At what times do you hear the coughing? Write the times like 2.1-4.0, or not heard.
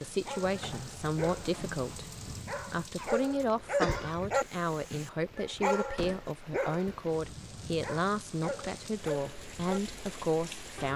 3.0-4.3.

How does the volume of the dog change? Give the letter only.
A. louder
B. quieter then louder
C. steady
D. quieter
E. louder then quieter
E.